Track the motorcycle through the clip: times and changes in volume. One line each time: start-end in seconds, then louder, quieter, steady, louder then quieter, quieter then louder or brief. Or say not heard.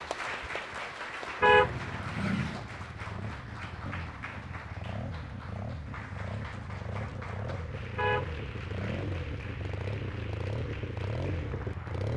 0.0-12.1 louder.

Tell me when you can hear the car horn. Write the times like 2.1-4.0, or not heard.
1.4-2.6, 8.0-9.2.